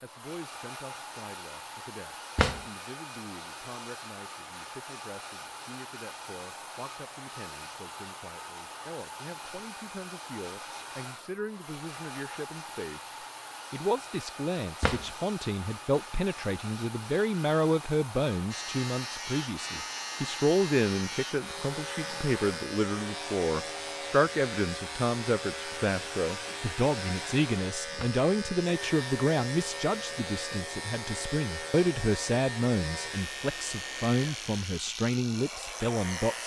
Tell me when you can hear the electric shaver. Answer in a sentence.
The electric shaver can be heard from 18.5 to 36.4 s.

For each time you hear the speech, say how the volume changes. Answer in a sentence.
The speech can be heard from 0.0 to 36.4 s, getting louder.